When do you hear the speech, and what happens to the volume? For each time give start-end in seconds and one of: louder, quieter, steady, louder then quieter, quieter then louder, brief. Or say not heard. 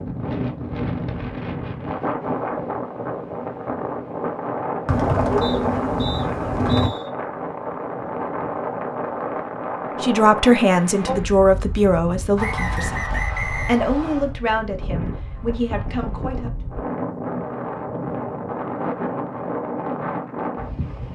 10.0-16.5 quieter.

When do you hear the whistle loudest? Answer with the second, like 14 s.
13 s.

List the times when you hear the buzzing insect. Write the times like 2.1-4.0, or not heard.
not heard.